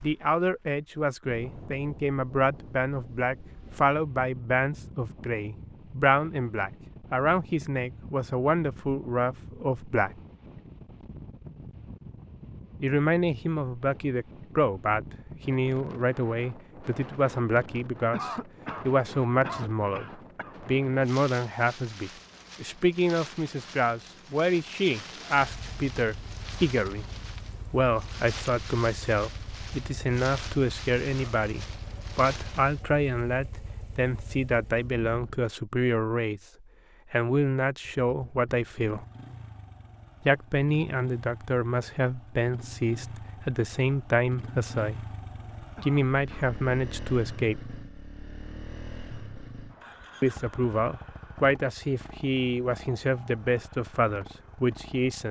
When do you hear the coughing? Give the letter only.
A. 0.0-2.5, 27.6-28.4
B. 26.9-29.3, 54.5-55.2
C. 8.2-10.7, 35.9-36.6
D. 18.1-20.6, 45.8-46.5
D.